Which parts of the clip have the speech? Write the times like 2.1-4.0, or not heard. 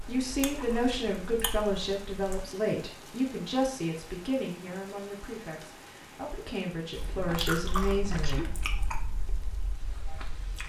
0.0-8.4.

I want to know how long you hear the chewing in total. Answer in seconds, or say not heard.
6 s.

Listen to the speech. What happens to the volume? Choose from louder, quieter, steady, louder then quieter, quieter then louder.
quieter then louder.